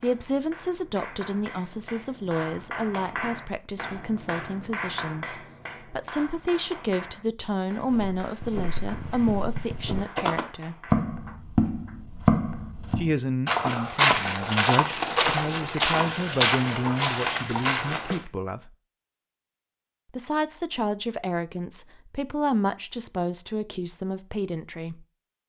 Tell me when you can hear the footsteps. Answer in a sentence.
The footsteps can be heard from 7.8 to 18.2 s.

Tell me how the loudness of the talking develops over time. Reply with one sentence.
The loudness of the talking stays about the same.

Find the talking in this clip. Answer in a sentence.
You can hear the talking from 0.0 to 10.8 s, from 12.9 to 18.7 s and from 20.1 to 25.1 s.